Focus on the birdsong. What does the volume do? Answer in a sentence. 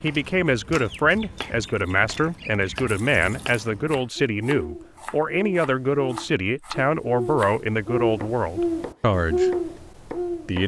The volume of the birdsong goes up.